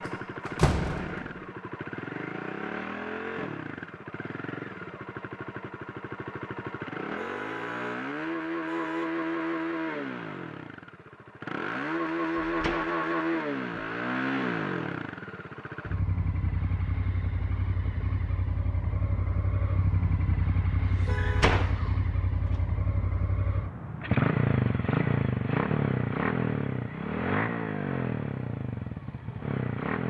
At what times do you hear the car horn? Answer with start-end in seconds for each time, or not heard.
7.2-9.1, 21.1-21.6.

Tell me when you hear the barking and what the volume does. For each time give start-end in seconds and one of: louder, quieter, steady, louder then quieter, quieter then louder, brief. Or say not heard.
not heard.